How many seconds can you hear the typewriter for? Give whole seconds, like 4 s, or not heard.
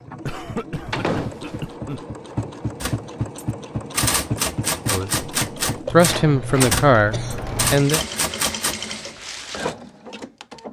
6 s.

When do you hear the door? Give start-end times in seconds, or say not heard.
0.9-1.6, 6.1-7.8.